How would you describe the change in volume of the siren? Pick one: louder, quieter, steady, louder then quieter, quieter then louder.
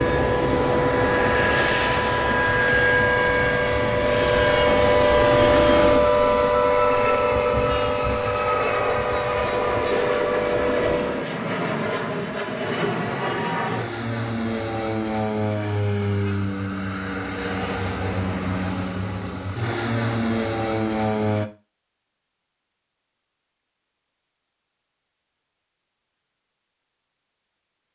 louder then quieter.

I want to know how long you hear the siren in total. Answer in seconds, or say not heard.
11 s.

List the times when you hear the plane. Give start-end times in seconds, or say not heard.
0.0-21.5.